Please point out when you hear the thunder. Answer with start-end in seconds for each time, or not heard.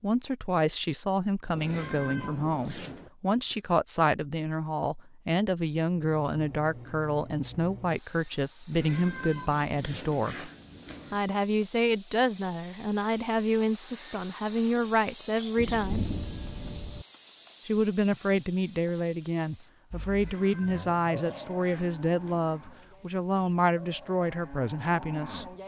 1.6-3.5, 15.6-17.1.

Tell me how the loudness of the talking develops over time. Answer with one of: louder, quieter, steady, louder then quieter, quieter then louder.
steady.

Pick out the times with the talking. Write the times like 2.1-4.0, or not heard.
0.0-10.5, 11.1-16.1, 17.6-25.5.